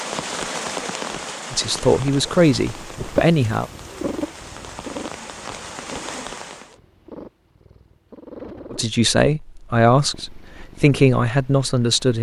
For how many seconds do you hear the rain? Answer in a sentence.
You can hear the rain for 7 seconds altogether.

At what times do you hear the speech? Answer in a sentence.
You can hear the speech from 1.5 to 3.7 s and from 8.7 to 12.1 s.